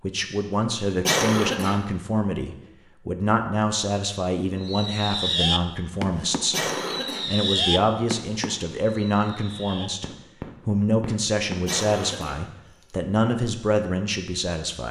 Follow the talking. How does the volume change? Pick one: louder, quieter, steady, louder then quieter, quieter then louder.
steady.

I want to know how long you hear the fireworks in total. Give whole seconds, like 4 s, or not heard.
7 s.